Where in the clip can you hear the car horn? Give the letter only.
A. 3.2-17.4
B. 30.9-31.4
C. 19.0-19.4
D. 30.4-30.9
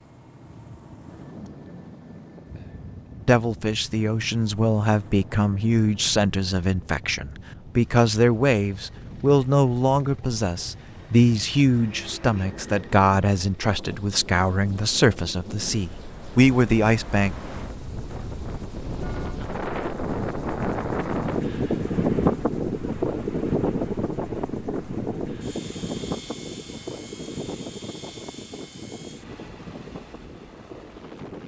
C.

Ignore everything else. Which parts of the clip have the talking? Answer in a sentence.
The talking can be heard from 3.2 to 17.4 s.